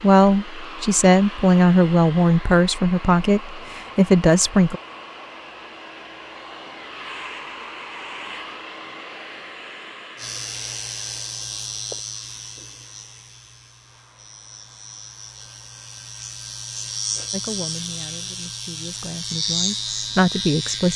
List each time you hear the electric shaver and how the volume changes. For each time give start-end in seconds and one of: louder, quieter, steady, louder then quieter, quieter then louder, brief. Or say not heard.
10.2-20.9 quieter then louder.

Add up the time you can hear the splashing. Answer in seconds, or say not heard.
not heard.